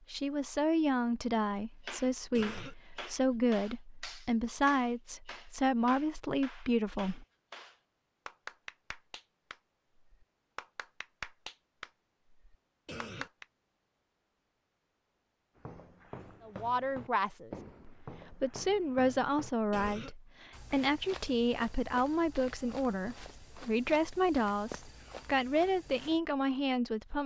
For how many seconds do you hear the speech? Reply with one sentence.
The speech can be heard for 18 seconds in total.